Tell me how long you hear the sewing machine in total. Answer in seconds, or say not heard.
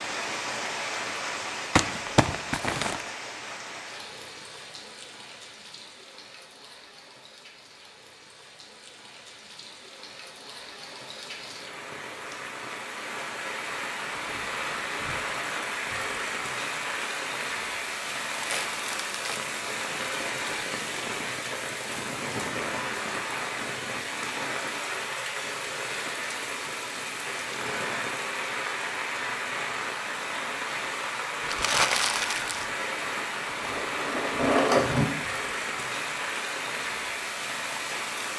2 s.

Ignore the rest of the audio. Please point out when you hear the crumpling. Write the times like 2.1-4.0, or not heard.
1.8-3.0, 18.3-19.5, 31.4-32.6.